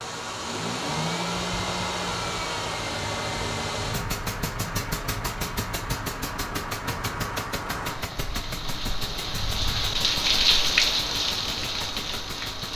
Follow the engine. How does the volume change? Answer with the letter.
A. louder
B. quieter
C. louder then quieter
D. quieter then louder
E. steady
B.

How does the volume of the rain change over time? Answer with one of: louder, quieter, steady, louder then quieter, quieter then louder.
louder.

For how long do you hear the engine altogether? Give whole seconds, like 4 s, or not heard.
13 s.